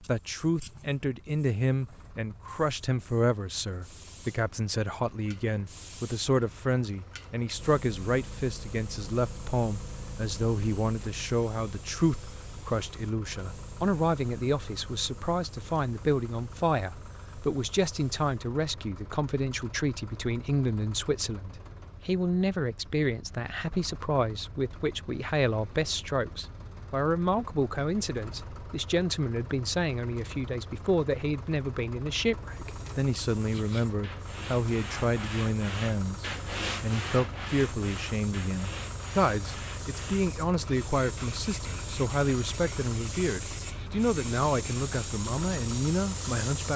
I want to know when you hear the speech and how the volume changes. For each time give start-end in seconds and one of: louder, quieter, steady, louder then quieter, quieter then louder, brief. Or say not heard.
0.1-46.7 steady.